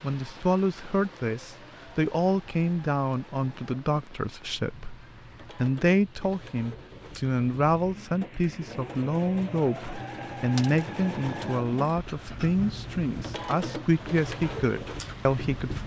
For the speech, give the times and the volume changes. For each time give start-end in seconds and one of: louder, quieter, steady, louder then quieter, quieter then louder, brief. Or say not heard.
0.0-15.8 steady.